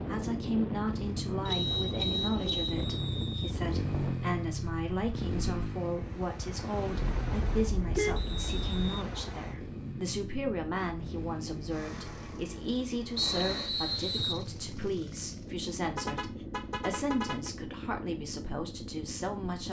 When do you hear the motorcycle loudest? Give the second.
4 s.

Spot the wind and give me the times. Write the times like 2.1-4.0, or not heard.
0.0-19.4.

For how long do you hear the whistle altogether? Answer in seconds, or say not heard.
3 s.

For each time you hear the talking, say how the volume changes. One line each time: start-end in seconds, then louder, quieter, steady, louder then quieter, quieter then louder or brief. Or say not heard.
0.1-19.6 steady.